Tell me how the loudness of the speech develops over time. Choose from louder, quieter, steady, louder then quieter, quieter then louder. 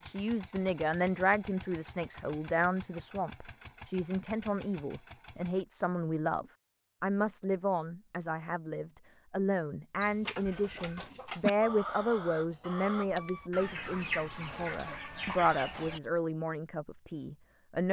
steady.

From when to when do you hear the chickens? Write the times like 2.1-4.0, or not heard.
10.0-16.0.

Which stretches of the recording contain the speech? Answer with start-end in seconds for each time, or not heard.
0.0-17.8.